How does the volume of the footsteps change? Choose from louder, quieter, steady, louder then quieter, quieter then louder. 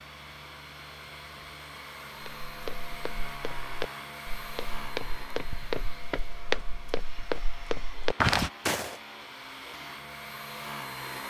louder.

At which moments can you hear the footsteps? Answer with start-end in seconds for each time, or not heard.
2.2-8.9.